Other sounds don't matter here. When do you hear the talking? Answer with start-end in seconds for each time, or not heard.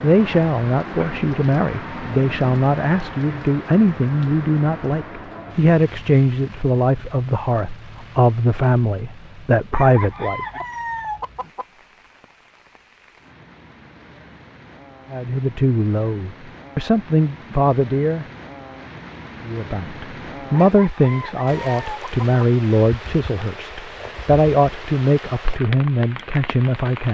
0.0-10.4, 15.1-18.2, 19.4-27.0.